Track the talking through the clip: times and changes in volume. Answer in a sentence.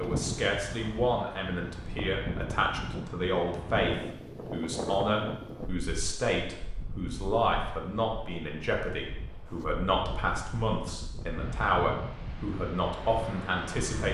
You can hear the talking from 0.0 to 14.1 s, at a steady volume.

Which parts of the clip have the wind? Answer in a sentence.
You can hear the wind from 0.0 to 14.1 s.